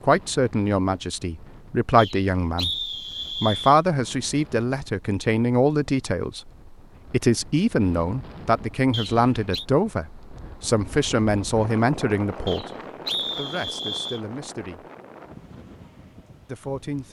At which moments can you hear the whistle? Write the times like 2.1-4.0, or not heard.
1.9-3.8, 8.9-9.7, 12.4-14.2.